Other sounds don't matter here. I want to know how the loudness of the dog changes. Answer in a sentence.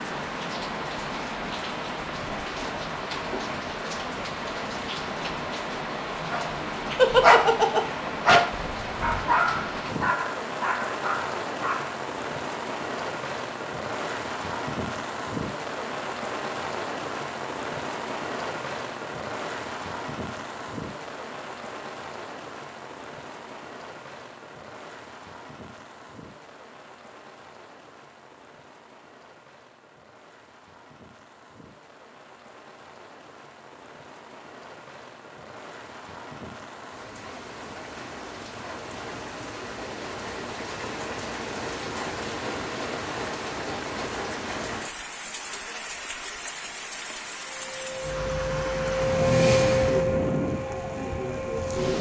The loudness of the dog goes down.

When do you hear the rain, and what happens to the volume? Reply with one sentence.
You can hear the rain from 0.0 to 51.9 s, getting quieter then louder.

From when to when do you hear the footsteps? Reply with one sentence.
You can't hear the footsteps here.